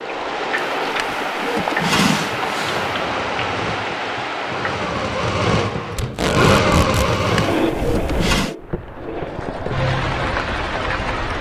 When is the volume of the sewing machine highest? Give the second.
7 s.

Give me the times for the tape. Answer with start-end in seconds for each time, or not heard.
6.0-7.1.